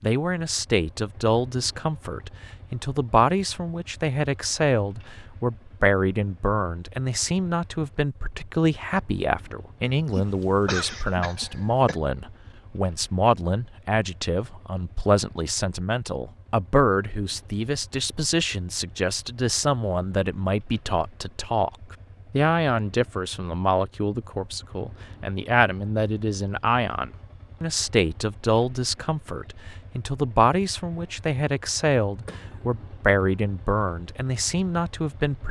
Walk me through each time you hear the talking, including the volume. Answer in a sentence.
You can hear the talking from 0.0 to 35.4 s, at a steady volume.